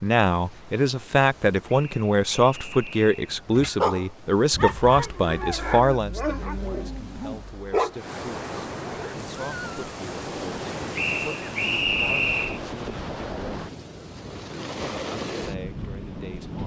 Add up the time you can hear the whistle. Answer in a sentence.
The whistle can be heard for 3 seconds in total.